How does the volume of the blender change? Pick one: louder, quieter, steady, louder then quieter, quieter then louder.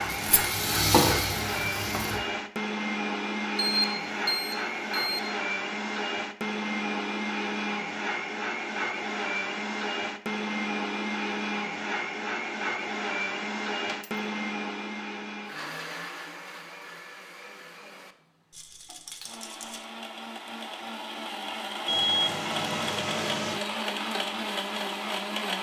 quieter then louder.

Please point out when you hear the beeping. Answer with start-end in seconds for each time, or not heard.
3.5-5.2, 21.9-23.6.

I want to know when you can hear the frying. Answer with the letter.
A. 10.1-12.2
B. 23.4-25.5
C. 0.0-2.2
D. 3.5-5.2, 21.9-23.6
C.